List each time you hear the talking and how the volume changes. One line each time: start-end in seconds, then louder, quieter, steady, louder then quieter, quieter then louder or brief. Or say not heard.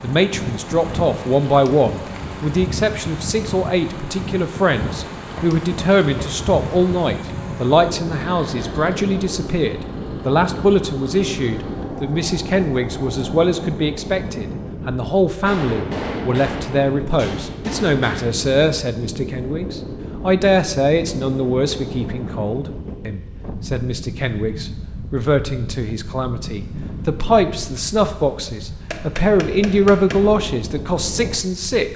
0.0-31.9 steady.